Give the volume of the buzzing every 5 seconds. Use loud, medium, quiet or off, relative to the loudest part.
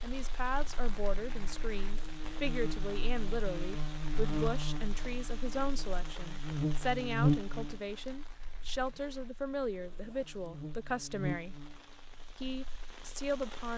medium, loud, medium.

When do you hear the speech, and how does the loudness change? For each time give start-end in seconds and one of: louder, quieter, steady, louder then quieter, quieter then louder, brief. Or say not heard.
0.0-11.7 steady
12.3-13.7 brief.